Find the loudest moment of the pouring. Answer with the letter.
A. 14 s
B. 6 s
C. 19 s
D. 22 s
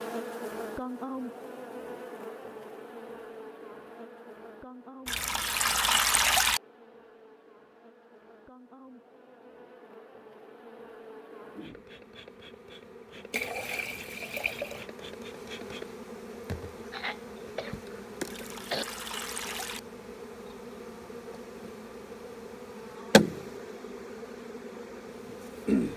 B.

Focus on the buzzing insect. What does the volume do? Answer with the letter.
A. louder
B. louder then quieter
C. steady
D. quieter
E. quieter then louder
E.